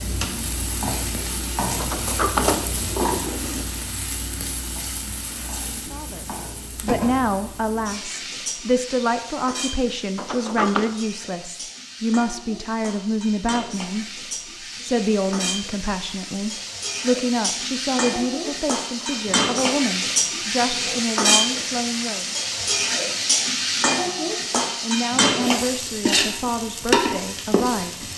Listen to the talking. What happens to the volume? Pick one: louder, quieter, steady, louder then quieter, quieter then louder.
steady.